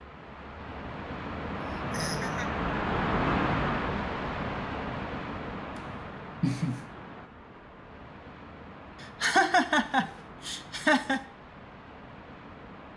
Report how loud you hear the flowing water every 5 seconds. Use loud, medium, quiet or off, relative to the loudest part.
loud, medium, quiet.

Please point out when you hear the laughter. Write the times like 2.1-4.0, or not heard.
1.7-2.5, 5.8-6.8, 9.0-11.2.